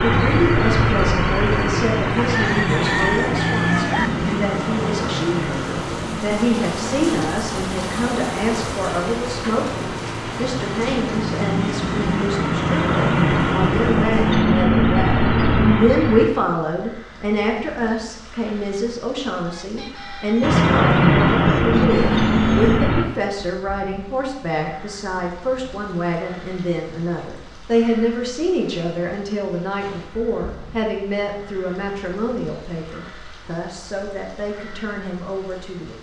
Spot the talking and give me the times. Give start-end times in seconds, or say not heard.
0.0-35.9.